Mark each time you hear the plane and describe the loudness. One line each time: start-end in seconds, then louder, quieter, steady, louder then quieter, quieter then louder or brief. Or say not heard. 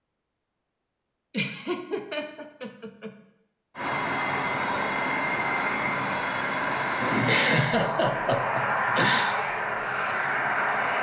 3.8-10.9 steady.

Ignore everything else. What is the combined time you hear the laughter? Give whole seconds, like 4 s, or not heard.
4 s.